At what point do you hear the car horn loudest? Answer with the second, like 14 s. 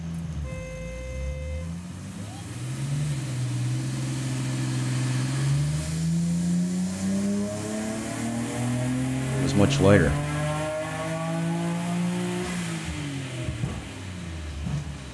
1 s.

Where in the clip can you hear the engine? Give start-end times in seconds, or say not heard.
0.0-15.1.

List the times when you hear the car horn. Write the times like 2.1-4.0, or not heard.
0.4-2.5.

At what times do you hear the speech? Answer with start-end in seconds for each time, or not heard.
9.3-10.2.